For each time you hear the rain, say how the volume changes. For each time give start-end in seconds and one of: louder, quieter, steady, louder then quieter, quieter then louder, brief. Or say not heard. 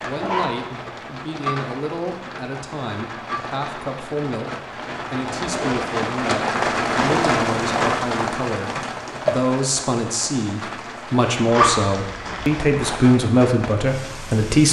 0.0-14.6 louder then quieter.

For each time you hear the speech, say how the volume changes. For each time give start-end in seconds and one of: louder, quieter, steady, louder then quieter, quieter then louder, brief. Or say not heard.
0.0-14.6 louder.